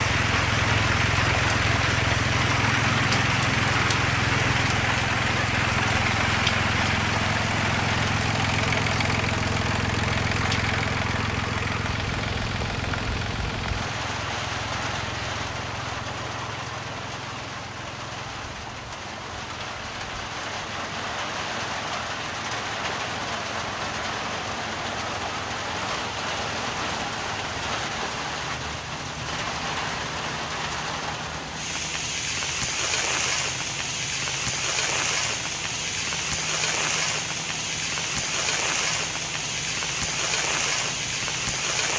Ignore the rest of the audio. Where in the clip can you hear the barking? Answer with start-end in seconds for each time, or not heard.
not heard.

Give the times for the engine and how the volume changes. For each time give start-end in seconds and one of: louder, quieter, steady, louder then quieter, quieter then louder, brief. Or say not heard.
0.0-41.9 quieter.